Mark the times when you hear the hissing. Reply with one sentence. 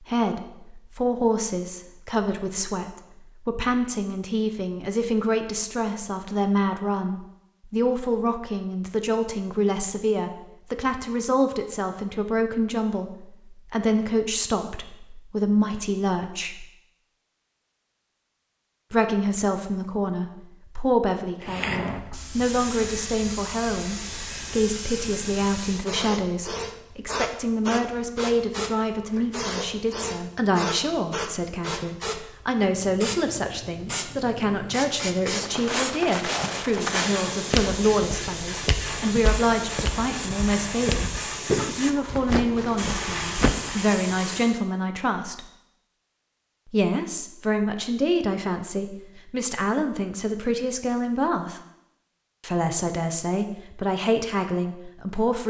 The hissing can be heard from 21.4 to 44.6 s.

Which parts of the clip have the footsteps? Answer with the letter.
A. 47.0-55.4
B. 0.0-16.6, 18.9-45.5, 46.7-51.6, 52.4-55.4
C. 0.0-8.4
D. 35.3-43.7
D.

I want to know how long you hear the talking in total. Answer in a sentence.
You can hear the talking for 51 seconds altogether.